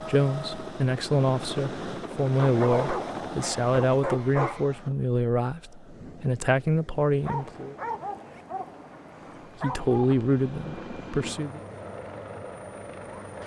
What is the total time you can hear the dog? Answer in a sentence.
You can hear the dog for 5 seconds altogether.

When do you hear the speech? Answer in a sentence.
The speech can be heard from 0.0 to 7.8 s and from 9.6 to 11.6 s.